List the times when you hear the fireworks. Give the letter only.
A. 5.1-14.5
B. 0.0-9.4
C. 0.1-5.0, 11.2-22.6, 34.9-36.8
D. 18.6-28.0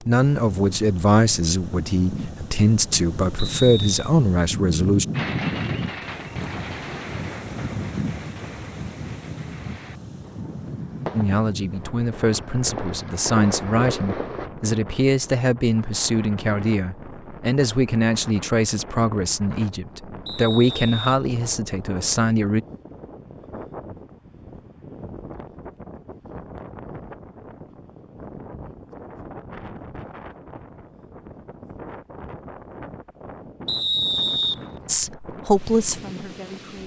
A.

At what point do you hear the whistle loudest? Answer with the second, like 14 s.
34 s.